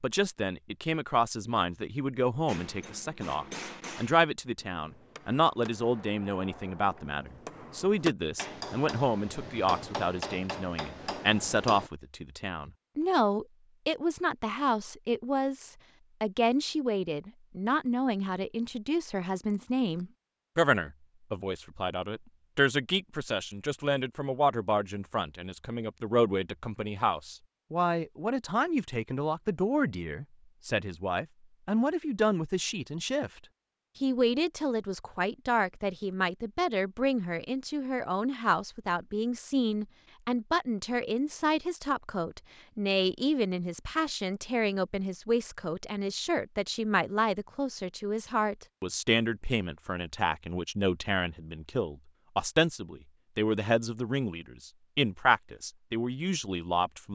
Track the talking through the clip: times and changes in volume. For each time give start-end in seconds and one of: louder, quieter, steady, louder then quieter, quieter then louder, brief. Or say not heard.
0.0-33.3 steady
34.0-57.0 steady.